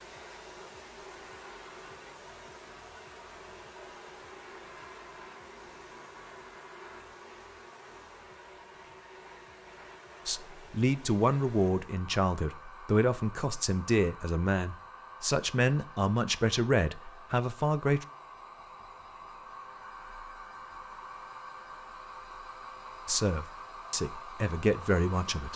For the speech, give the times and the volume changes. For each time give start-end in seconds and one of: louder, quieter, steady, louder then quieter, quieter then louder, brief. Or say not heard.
10.2-18.1 steady
23.1-25.5 brief.